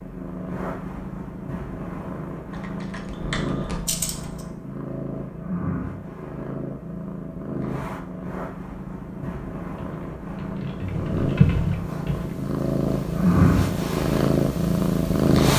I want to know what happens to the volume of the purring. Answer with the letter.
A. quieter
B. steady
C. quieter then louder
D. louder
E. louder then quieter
D.